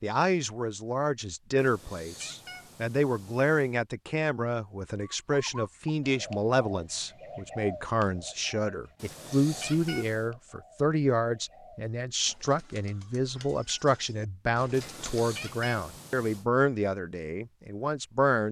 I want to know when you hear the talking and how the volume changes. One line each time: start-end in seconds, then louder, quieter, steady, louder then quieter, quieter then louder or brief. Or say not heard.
0.0-18.4 steady.